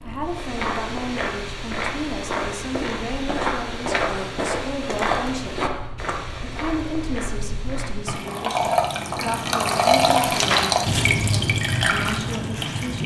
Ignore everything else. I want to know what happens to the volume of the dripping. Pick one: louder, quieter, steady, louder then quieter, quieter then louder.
louder.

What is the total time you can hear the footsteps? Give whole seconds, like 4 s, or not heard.
8 s.